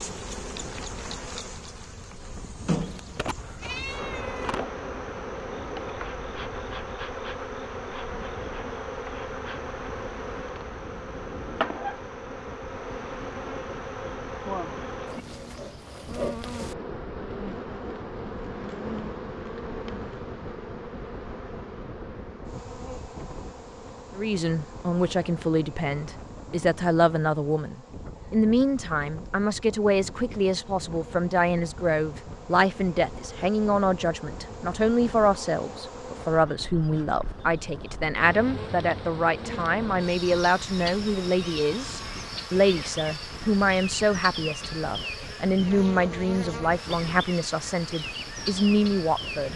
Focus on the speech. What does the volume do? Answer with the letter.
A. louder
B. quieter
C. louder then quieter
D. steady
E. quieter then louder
D.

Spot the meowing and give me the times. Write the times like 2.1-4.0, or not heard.
2.8-4.7.